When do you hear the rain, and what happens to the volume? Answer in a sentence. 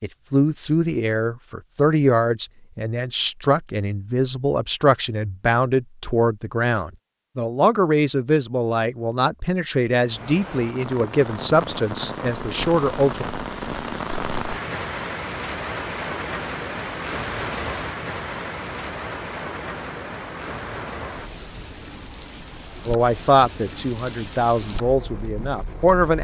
The rain can be heard from 10.0 to 26.1 s, getting quieter.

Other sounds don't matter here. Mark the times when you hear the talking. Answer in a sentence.
You can hear the talking from 0.0 to 13.2 s and from 22.9 to 26.1 s.